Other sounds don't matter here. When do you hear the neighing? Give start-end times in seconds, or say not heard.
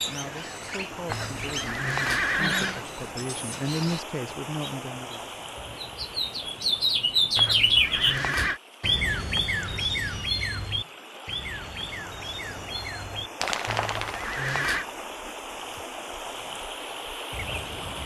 1.1-2.9, 7.3-8.6, 13.7-14.8.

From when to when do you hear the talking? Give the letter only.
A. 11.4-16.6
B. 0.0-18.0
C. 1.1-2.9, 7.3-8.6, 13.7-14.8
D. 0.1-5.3
D.